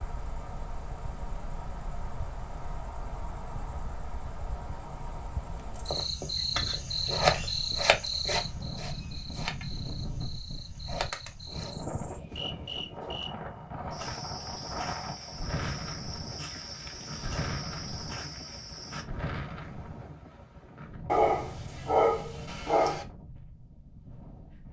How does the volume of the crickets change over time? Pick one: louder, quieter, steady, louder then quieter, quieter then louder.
louder then quieter.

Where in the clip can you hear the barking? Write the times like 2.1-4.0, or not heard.
21.1-23.1.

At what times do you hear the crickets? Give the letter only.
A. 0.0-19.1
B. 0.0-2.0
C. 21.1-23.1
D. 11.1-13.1
A.